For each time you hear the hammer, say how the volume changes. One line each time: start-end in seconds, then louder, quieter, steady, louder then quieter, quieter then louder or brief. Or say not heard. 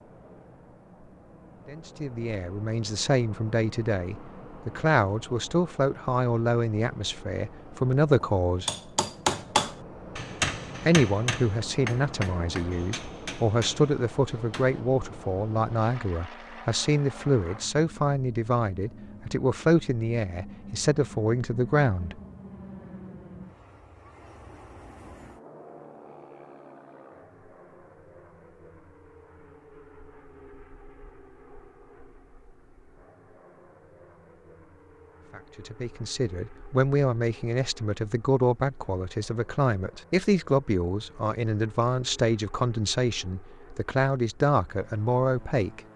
8.2-14.8 quieter.